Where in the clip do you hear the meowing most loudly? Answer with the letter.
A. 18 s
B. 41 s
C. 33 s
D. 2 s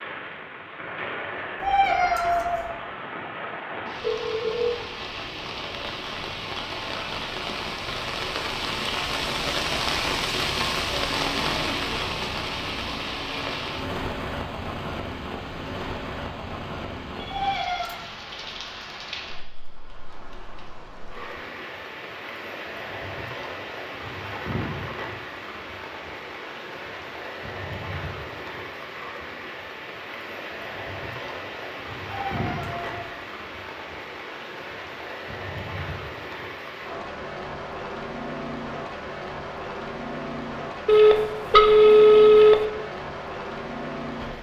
D.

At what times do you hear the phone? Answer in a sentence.
You can hear the phone from 4.0 to 4.7 s, from 17.1 to 17.9 s and from 40.9 to 42.5 s.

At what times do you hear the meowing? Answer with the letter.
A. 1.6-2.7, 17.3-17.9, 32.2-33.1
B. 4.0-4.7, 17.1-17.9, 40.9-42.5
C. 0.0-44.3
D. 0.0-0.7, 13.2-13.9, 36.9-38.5
A.